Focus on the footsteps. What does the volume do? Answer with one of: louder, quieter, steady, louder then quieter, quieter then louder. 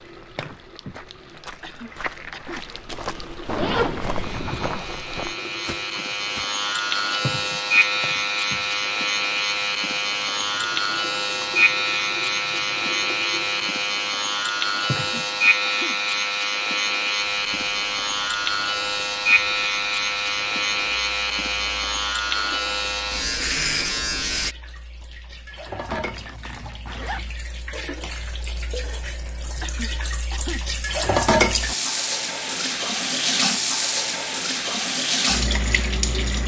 louder.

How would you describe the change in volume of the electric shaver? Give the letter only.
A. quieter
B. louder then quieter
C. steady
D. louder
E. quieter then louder
C.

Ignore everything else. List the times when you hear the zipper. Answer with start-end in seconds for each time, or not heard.
3.5-4.8, 25.9-27.4.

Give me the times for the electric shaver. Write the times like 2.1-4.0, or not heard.
4.2-24.6.